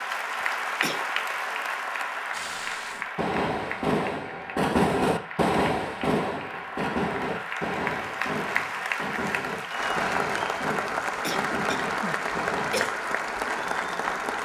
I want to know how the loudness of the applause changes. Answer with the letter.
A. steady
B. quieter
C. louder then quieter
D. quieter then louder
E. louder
D.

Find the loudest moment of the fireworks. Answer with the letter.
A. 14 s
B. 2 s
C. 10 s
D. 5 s
D.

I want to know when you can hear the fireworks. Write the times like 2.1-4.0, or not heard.
2.3-12.9.